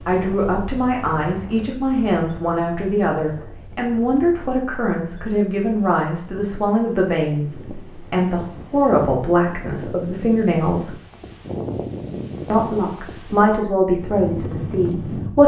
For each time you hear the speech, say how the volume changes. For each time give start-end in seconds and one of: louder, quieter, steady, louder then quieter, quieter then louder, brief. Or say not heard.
0.1-10.9 steady
12.5-15.4 brief.